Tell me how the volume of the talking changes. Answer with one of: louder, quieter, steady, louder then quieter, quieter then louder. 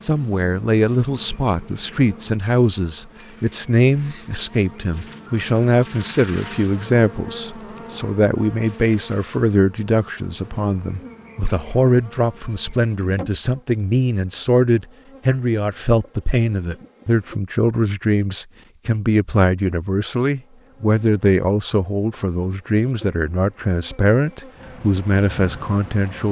steady.